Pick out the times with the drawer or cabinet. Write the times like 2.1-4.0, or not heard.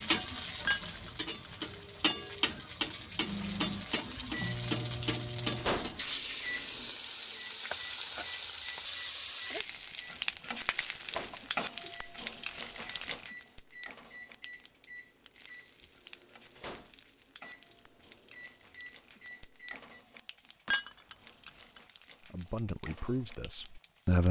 not heard.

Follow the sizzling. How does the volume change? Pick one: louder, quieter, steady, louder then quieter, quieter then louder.
quieter.